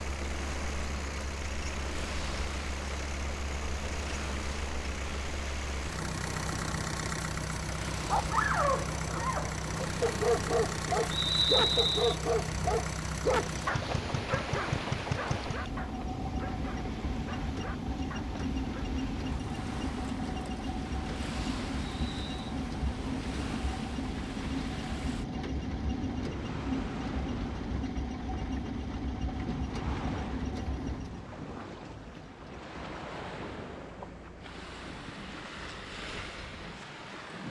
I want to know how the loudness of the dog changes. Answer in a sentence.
The volume of the dog goes down.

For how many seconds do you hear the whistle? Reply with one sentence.
The whistle can be heard for 2 seconds in total.